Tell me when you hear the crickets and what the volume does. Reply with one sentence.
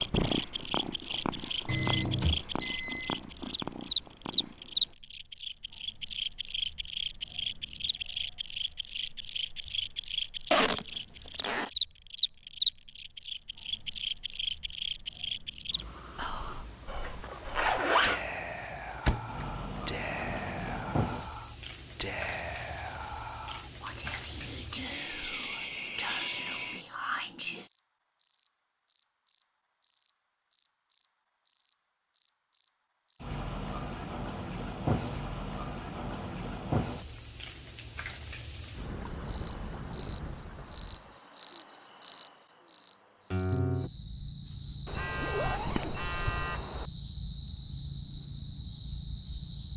You can hear the crickets from 0.0 to 49.7 s, at a steady volume.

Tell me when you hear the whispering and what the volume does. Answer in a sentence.
You can hear the whispering from 16.1 to 27.7 s, at a steady volume.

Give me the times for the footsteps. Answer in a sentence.
The footsteps can't be heard in this clip.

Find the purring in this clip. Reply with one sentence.
You can hear the purring from 0.0 to 5.0 s.